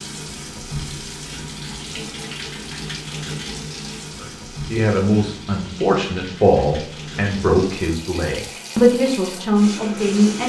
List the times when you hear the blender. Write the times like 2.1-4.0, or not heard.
not heard.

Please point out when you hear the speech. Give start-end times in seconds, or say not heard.
4.2-10.4.